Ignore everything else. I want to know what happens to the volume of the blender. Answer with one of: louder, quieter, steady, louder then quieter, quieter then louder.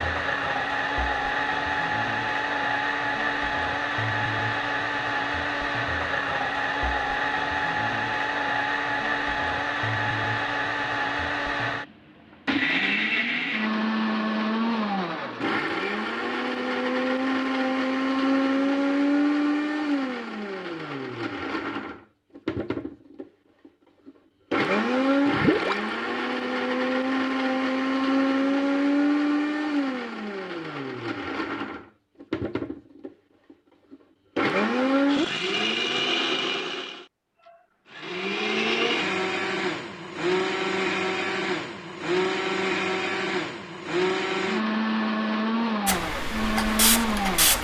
steady.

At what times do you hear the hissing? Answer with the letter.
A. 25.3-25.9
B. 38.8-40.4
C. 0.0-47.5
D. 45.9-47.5
D.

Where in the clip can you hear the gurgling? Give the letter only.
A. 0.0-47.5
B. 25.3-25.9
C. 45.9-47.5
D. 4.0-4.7
B.